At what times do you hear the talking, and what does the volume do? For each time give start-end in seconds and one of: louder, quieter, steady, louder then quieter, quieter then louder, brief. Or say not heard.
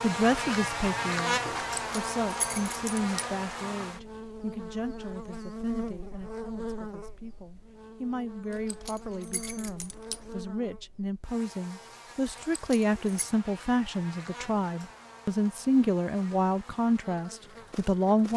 0.0-18.3 quieter then louder.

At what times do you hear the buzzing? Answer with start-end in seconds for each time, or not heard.
0.0-18.3.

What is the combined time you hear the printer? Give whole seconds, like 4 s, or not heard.
not heard.